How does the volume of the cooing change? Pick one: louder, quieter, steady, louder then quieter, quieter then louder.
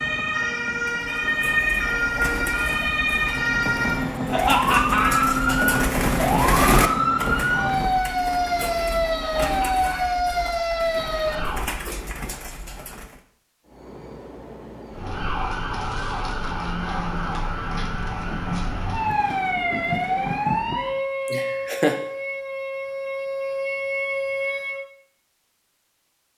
louder then quieter.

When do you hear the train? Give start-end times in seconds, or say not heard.
0.0-8.1, 13.7-21.0.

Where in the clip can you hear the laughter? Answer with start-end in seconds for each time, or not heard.
4.2-5.8, 9.2-10.2, 21.2-21.9.